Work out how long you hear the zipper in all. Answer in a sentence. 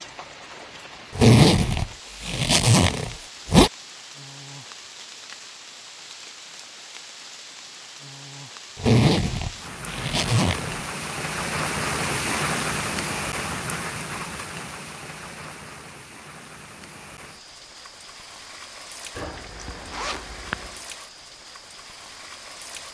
You can hear the zipper for 6 seconds altogether.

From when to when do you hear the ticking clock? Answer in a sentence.
The ticking clock can't be heard in this clip.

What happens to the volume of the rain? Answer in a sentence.
The volume of the rain goes up, then down.